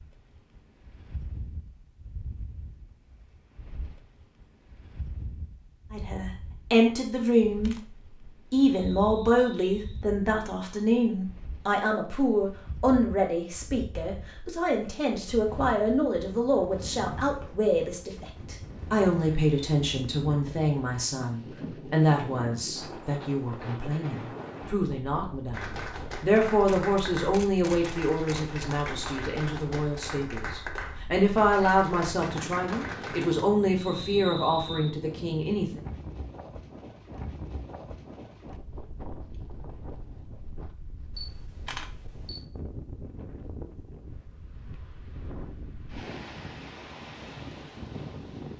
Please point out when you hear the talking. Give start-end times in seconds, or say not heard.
5.9-7.8, 8.5-35.8.